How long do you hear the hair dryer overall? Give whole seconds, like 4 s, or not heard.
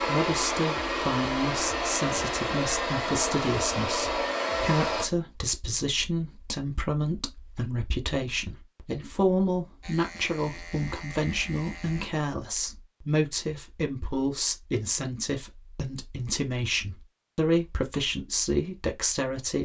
5 s.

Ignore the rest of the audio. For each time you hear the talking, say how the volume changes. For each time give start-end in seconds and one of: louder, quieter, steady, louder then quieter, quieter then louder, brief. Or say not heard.
0.0-19.6 steady.